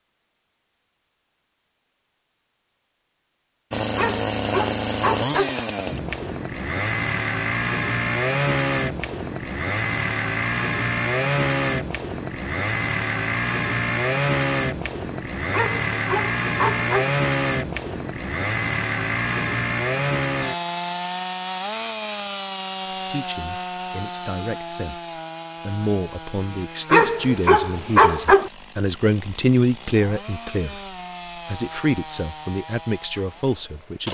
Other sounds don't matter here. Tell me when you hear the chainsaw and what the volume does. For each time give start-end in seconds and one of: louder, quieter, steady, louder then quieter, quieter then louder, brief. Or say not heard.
3.7-34.0 quieter.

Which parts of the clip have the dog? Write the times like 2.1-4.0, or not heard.
4.0-5.5, 15.5-17.1, 26.9-28.5.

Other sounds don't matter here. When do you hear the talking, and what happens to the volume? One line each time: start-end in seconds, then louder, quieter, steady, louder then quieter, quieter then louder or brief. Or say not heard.
22.8-30.8 louder
31.4-34.0 brief.